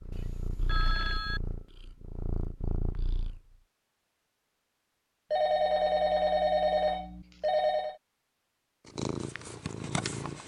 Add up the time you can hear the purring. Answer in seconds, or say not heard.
5 s.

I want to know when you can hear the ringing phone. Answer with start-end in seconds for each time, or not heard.
0.1-1.4, 5.3-8.0.